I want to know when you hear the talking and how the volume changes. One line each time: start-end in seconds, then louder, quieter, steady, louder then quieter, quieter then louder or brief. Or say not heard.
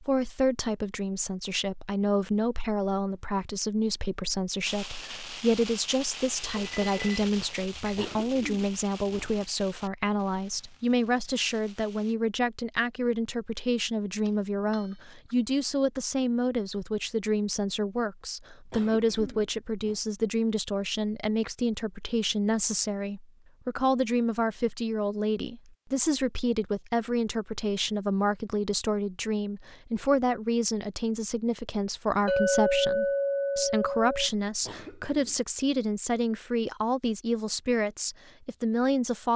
0.0-39.3 steady.